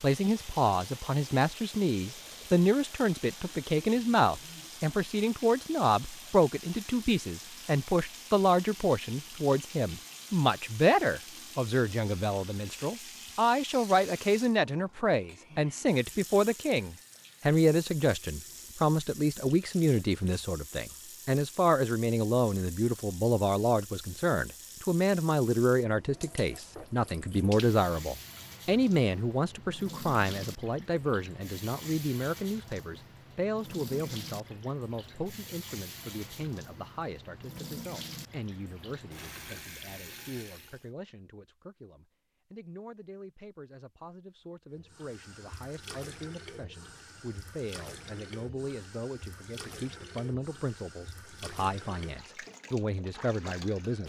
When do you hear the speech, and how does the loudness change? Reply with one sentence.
The speech can be heard from 0.0 to 54.0 s, getting quieter.